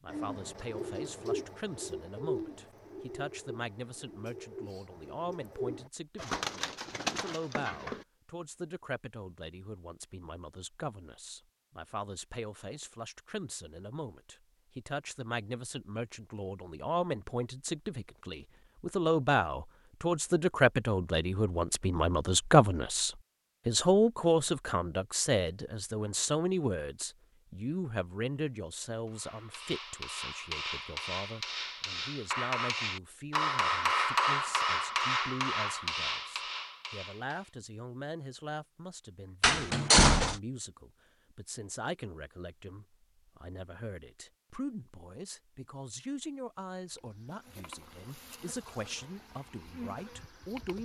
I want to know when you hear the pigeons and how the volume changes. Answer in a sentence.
You can hear the pigeons from 0.1 to 8.1 s, getting quieter then louder.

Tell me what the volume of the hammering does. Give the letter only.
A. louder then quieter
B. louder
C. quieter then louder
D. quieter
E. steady
A.